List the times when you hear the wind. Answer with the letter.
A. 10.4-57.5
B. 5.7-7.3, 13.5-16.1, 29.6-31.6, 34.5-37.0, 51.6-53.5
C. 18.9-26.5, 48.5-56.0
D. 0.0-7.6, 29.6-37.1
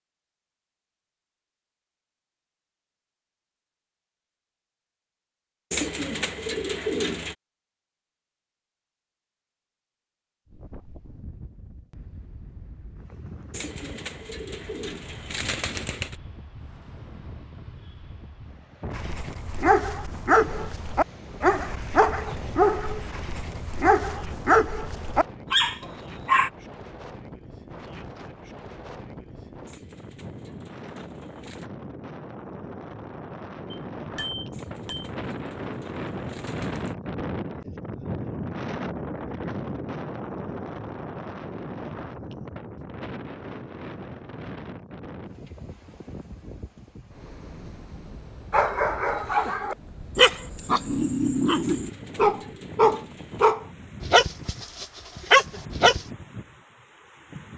A.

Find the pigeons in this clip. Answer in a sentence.
You can hear the pigeons from 5.7 to 7.3 s, from 13.5 to 16.1 s, from 29.6 to 31.6 s, from 34.5 to 37.0 s and from 51.6 to 53.5 s.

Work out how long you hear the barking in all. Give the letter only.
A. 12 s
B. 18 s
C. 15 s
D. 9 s
C.